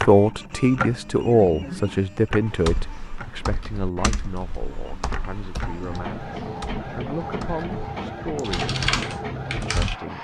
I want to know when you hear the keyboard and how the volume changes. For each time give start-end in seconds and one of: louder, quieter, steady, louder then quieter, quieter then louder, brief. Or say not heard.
2.5-9.9 quieter then louder.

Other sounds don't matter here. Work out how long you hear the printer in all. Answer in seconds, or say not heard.
10 s.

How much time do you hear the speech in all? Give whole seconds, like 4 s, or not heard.
10 s.